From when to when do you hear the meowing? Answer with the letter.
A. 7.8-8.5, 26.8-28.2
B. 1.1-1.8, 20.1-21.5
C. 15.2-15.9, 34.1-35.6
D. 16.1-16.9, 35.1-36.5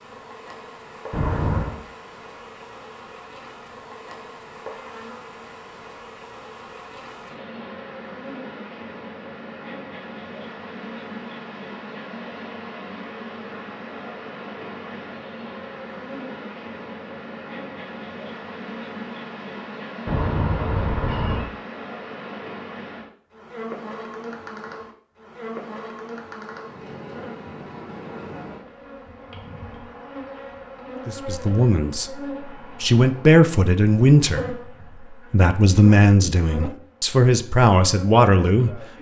B.